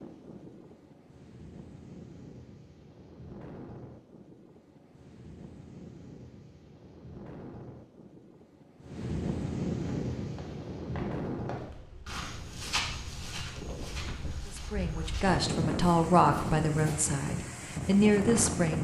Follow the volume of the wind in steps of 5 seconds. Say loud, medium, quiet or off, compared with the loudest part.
quiet, medium, medium, loud.